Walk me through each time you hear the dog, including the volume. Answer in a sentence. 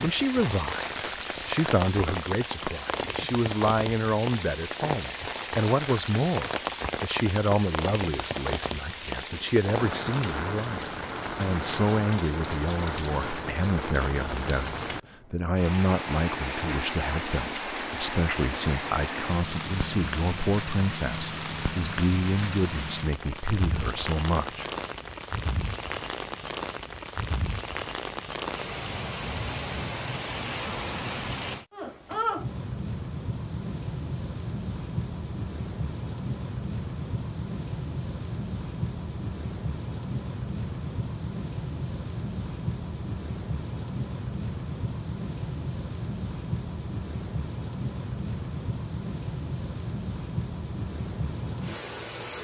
You can't hear the dog here.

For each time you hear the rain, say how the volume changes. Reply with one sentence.
You can hear the rain from 0.0 to 52.3 s, at a steady volume.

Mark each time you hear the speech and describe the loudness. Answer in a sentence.
The speech can be heard from 0.0 to 24.7 s, at a steady volume.